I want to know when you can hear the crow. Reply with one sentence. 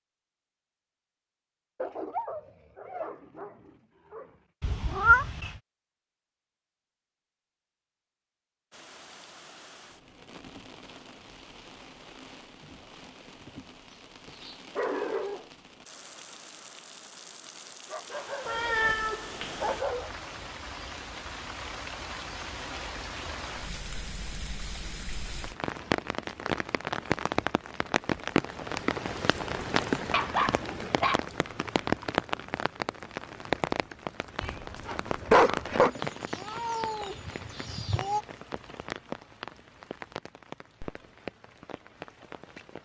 The crow can't be heard in this clip.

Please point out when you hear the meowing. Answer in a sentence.
The meowing can be heard from 4.6 to 5.5 s, from 18.4 to 19.8 s and from 35.8 to 38.2 s.